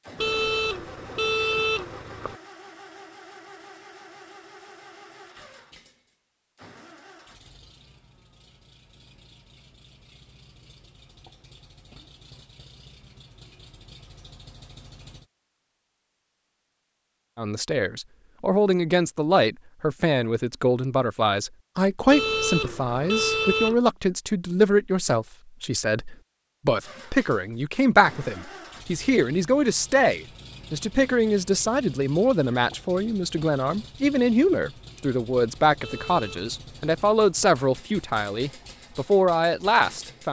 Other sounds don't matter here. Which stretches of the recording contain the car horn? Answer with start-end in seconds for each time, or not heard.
0.1-2.4, 22.1-23.8, 35.8-36.5.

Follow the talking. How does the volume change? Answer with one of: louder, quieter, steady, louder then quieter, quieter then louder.
steady.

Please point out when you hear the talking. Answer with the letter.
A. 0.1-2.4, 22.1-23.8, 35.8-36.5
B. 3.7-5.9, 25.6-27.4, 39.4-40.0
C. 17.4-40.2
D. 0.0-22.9
C.